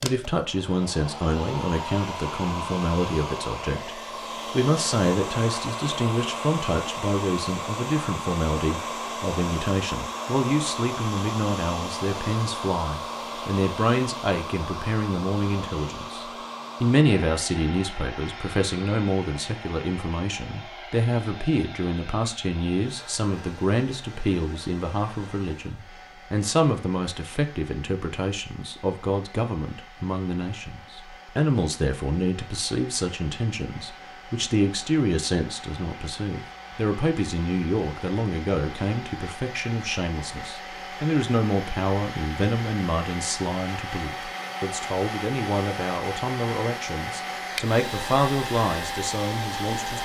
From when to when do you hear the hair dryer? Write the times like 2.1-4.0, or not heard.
0.0-50.0.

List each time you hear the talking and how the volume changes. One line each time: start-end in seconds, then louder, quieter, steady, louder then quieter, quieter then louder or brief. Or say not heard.
0.0-50.0 steady.